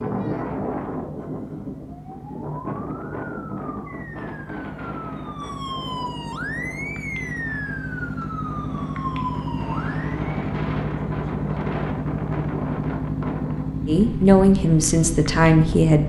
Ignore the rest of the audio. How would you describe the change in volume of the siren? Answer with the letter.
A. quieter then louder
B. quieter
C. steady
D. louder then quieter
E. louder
E.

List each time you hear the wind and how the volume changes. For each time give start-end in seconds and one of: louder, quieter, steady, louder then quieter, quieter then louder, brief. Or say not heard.
0.0-15.9 quieter then louder.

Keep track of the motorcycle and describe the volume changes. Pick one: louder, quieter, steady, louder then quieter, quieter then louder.
louder.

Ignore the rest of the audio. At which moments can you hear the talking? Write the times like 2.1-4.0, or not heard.
13.8-16.0.